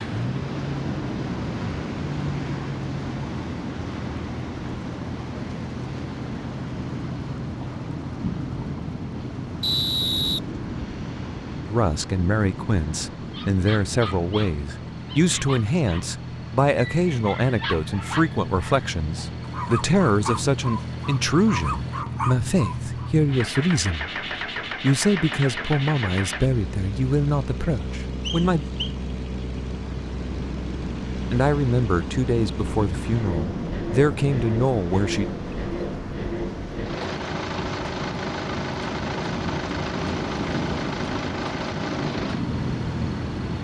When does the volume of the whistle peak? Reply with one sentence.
The loudest moment of the whistle is at 10 seconds.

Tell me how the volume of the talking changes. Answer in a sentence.
The volume of the talking stays about the same.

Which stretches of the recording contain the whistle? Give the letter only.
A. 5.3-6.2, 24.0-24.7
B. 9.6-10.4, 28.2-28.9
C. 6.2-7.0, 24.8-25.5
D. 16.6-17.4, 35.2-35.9
B.